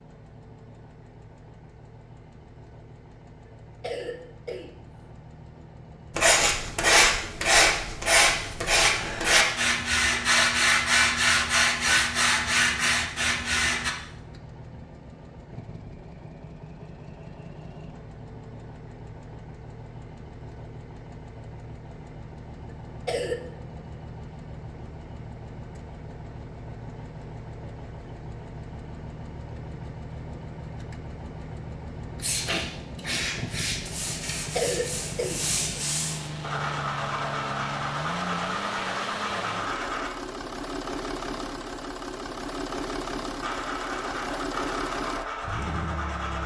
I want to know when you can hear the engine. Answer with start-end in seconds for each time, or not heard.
0.0-46.4.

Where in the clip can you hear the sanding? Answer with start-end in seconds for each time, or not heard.
6.2-13.9, 32.2-40.1, 43.4-46.4.